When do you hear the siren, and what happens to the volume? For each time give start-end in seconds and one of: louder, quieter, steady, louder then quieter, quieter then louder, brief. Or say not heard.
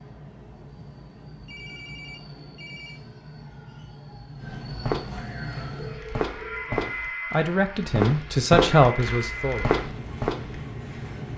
not heard.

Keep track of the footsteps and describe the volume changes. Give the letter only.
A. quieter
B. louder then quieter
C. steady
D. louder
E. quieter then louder
D.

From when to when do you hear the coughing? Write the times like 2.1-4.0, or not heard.
not heard.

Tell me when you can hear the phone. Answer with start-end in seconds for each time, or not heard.
1.4-3.0, 5.8-6.7.